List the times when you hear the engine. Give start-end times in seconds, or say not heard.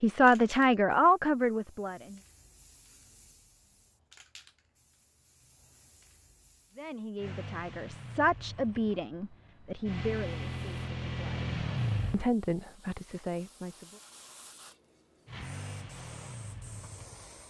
7.2-12.2, 15.2-17.4.